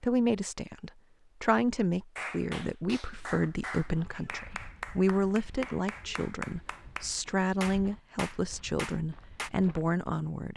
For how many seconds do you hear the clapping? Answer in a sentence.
The clapping can be heard for 7 seconds in total.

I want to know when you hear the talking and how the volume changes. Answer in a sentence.
The talking can be heard from 0.0 to 10.5 s, at a steady volume.